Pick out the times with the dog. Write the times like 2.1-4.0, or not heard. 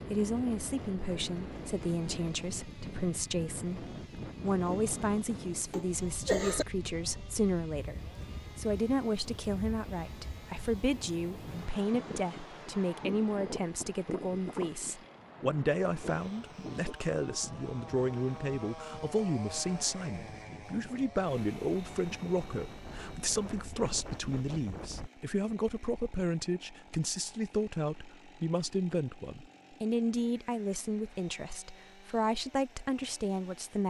not heard.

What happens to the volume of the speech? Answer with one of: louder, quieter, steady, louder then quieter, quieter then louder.
steady.